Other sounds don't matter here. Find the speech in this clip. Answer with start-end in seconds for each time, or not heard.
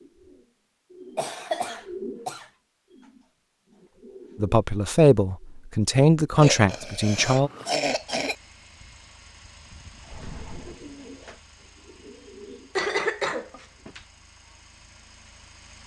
4.4-7.5.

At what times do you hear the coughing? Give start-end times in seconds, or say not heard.
1.1-2.5, 6.3-8.3, 12.8-14.0.